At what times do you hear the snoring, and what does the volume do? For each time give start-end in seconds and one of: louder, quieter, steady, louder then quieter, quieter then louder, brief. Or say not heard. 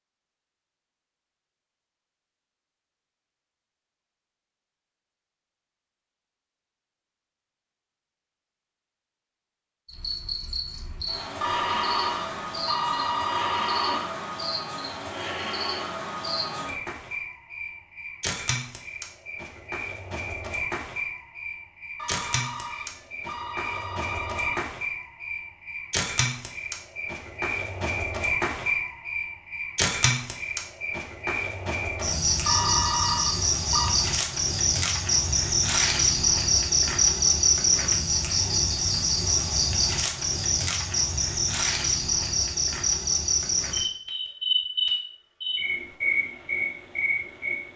not heard.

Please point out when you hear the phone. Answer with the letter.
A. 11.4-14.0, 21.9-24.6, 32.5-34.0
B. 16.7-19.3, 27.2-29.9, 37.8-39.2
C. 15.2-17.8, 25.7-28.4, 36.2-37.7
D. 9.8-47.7
A.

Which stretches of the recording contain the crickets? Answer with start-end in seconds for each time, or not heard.
9.8-47.7.